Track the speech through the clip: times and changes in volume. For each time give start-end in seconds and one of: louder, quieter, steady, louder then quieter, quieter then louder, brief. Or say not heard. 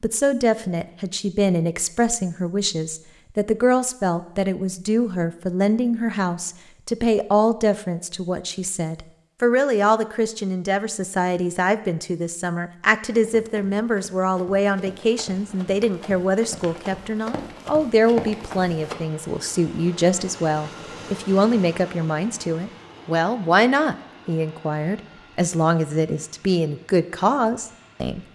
0.0-28.2 steady.